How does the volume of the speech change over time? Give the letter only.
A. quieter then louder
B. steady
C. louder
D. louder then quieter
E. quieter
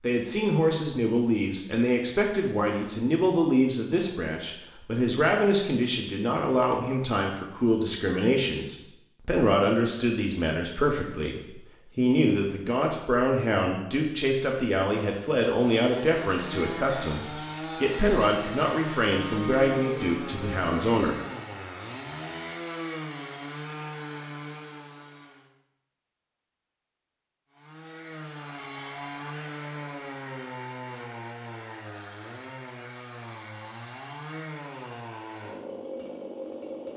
B.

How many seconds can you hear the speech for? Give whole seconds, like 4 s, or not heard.
21 s.